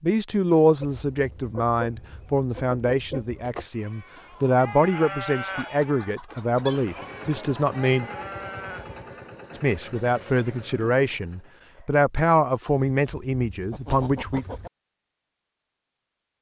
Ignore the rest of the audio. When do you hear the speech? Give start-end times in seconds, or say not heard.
0.0-8.1, 9.6-14.4.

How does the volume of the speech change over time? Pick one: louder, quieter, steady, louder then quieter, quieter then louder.
steady.